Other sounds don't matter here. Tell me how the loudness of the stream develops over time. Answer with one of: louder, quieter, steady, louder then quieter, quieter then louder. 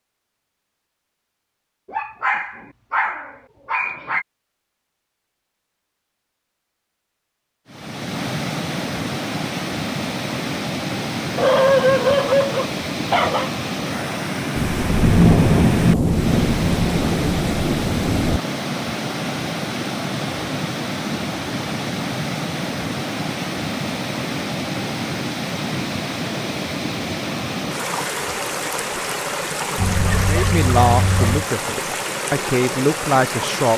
steady.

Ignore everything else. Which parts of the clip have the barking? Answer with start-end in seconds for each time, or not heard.
1.9-4.2, 11.3-13.5, 29.8-31.4.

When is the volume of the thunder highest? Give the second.
15 s.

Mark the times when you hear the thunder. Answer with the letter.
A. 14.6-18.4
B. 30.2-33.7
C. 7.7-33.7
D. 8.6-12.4
A.